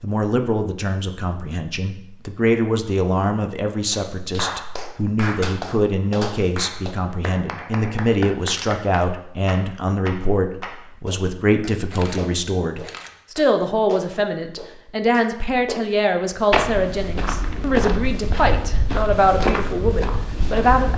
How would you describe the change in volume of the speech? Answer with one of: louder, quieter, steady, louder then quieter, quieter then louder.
steady.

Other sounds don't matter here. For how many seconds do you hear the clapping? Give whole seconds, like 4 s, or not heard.
12 s.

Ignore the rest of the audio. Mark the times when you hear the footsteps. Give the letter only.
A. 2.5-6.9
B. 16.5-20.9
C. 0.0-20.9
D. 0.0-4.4
B.